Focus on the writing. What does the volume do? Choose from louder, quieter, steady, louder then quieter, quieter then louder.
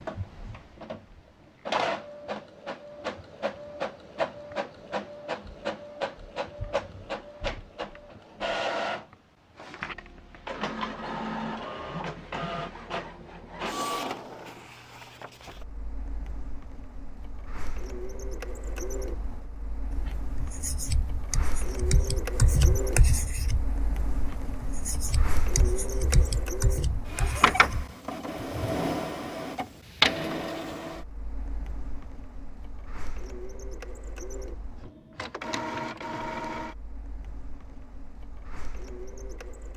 louder then quieter.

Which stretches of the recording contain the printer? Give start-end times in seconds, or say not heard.
0.0-39.7.